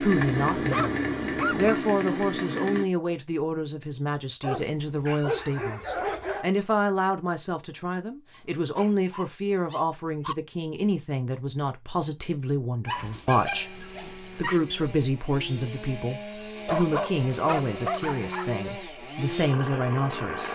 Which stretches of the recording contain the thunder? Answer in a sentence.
The thunder can't be heard in this clip.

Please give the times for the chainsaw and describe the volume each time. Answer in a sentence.
You can hear the chainsaw briefly from 0.0 to 2.9 s; and from 13.5 to 20.5 s, getting louder.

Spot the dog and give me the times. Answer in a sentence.
The dog can be heard from 0.1 to 1.8 s, from 4.4 to 6.5 s, from 8.8 to 10.3 s, from 12.8 to 14.6 s and from 16.6 to 18.6 s.